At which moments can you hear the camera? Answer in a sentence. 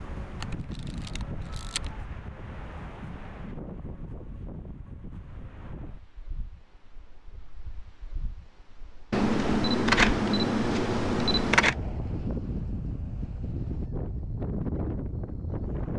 You can hear the camera from 0.3 to 1.9 s and from 9.1 to 11.8 s.